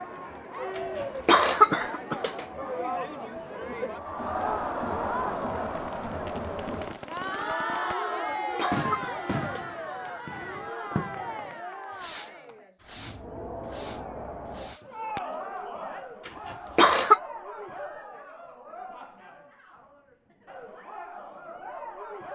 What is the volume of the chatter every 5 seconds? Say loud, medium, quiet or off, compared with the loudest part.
loud, loud, medium, medium, medium.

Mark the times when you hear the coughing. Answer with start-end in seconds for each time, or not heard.
0.8-2.5, 8.1-9.7, 16.2-17.2.